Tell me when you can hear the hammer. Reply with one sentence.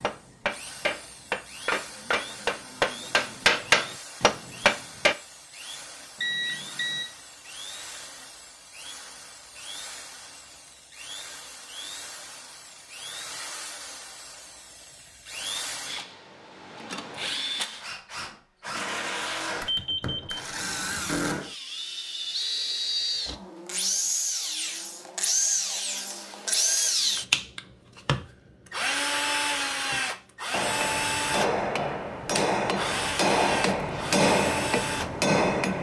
The hammer can be heard from 0.0 to 5.2 s and from 30.5 to 35.7 s.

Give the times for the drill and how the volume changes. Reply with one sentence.
The drill can be heard from 0.0 to 35.1 s, getting louder.